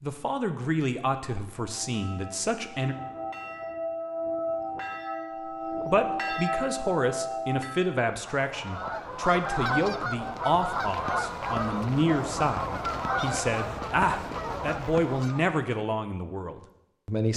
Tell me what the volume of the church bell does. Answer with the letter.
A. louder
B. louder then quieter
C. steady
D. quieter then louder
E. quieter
A.